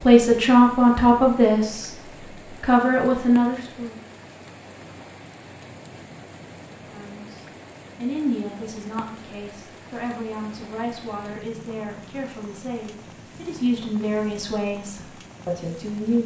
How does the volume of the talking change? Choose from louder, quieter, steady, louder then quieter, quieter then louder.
quieter then louder.